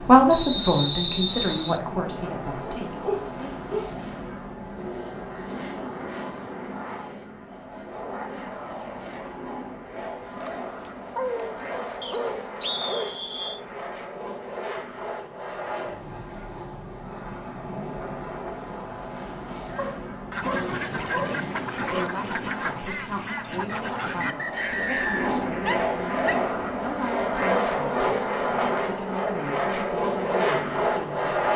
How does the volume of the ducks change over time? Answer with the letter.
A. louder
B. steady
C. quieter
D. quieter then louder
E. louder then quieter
C.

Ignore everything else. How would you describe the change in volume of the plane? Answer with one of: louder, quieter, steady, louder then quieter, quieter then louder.
louder.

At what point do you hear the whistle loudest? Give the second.
1 s.